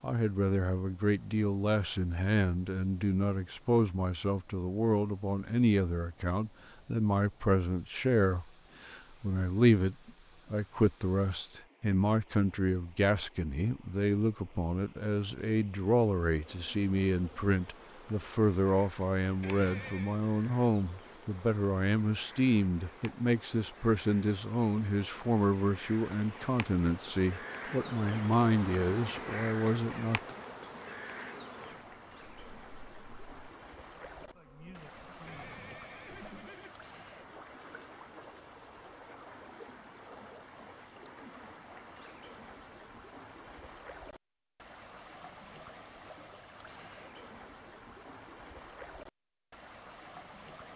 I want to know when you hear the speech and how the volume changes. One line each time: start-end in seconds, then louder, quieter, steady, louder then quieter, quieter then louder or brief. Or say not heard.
0.0-30.3 steady.